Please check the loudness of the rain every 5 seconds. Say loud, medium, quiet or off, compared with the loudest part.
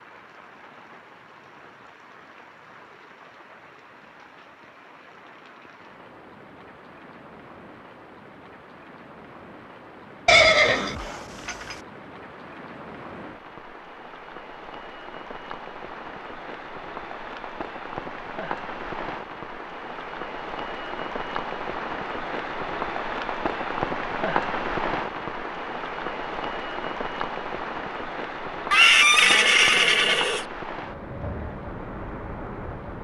quiet, quiet, quiet, medium, loud, loud, medium.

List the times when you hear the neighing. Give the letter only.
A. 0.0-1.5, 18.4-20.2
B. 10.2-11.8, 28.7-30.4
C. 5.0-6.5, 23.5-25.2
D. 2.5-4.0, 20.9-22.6
B.